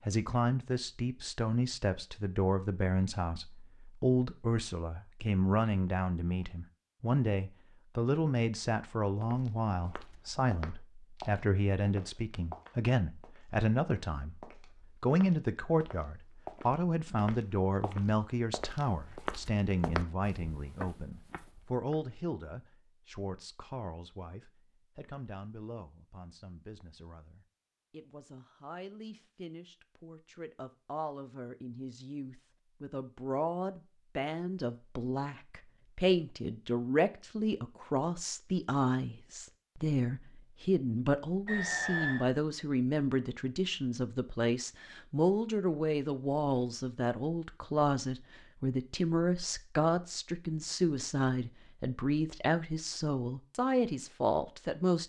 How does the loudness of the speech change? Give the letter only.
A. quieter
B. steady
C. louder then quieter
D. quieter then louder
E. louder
D.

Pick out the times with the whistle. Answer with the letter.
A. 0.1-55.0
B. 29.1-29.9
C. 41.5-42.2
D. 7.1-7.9
C.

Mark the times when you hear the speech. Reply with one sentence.
The speech can be heard from 0.1 to 55.0 s.